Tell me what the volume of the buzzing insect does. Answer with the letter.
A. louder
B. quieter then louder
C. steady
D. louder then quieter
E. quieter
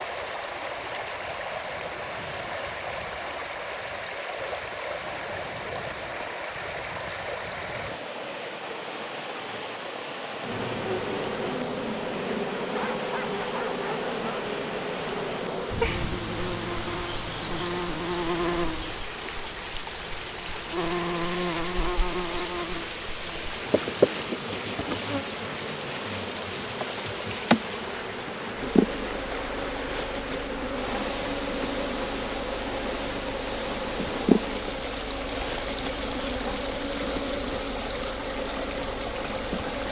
C.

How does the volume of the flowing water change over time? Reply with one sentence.
The volume of the flowing water stays about the same.